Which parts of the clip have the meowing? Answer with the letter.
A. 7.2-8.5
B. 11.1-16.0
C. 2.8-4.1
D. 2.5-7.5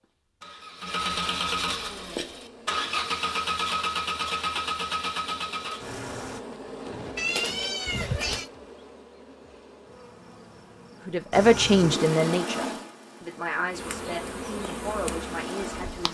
A.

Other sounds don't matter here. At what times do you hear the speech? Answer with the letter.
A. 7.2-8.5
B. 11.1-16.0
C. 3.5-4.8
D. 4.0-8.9
B.